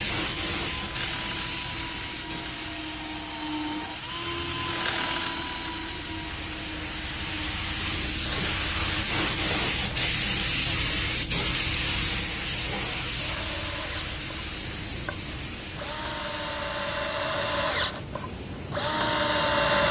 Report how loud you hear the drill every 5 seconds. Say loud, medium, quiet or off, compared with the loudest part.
loud, medium, quiet, loud.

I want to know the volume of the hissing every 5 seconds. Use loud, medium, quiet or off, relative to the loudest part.
medium, loud, loud, medium.